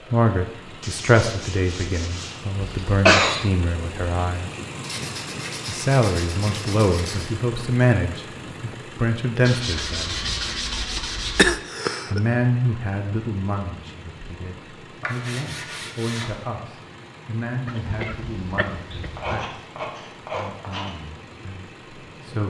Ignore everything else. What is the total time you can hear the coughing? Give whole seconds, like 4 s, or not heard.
4 s.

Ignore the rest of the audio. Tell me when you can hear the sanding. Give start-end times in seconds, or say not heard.
0.8-2.4, 4.8-7.3, 9.4-11.4, 15.0-16.4, 18.9-20.9.